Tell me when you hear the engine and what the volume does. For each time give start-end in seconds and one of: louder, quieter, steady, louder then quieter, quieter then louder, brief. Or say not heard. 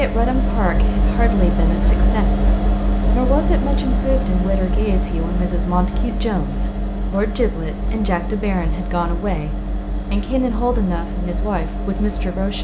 0.0-12.5 quieter.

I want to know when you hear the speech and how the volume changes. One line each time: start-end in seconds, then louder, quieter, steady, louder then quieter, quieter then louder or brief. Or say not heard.
0.0-9.5 steady
10.1-12.5 brief.